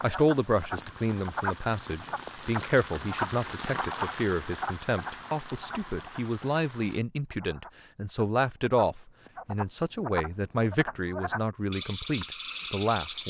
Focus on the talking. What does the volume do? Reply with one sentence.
The volume of the talking stays about the same.